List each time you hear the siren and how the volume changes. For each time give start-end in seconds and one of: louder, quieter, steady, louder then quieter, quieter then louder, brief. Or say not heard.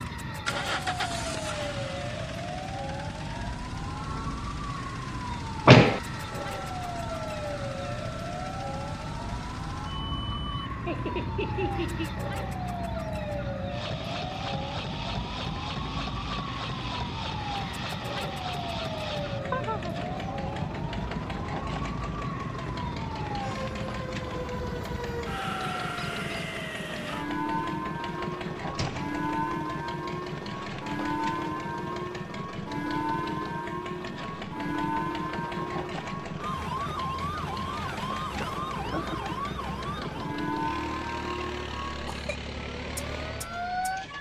0.0-44.1 steady.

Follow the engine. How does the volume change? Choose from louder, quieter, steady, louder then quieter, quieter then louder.
steady.